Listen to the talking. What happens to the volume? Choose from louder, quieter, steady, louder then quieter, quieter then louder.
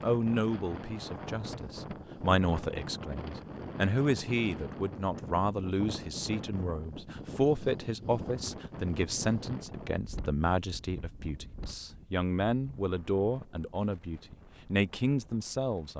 steady.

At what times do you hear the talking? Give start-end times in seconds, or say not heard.
0.0-15.9.